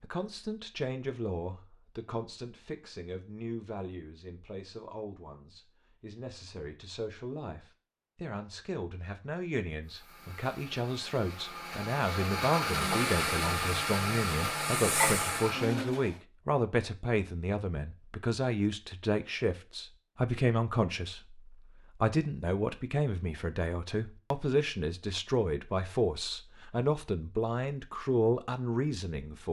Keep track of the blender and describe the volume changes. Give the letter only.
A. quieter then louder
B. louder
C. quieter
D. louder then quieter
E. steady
B.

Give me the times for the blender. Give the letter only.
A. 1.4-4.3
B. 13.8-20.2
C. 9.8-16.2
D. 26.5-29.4
C.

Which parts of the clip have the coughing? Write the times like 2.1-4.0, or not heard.
not heard.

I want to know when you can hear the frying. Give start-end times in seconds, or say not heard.
12.6-15.6.